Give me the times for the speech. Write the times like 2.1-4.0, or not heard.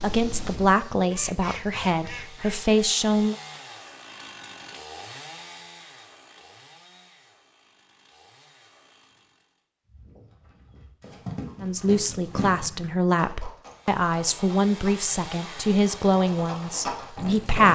0.0-3.4, 11.6-17.6.